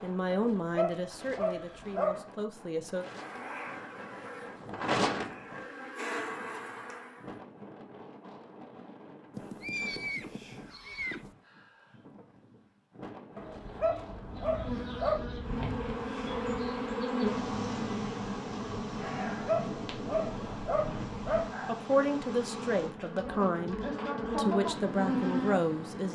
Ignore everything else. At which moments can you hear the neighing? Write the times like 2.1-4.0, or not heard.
9.3-11.3.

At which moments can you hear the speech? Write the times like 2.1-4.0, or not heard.
0.0-3.0, 21.6-26.1.